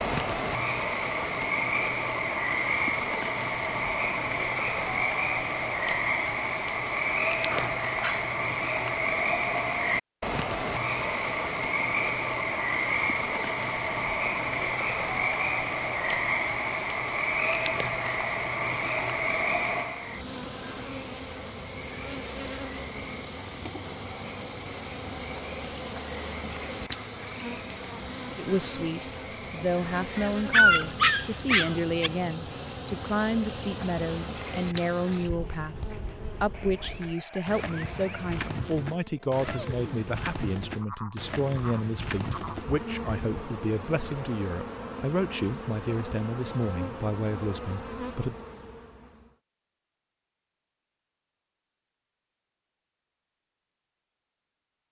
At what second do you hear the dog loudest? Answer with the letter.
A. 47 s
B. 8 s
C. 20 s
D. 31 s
D.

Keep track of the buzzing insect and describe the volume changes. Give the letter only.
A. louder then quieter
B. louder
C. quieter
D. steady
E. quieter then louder
D.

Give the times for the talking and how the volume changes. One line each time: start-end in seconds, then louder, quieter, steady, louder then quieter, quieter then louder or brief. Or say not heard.
28.4-48.4 steady.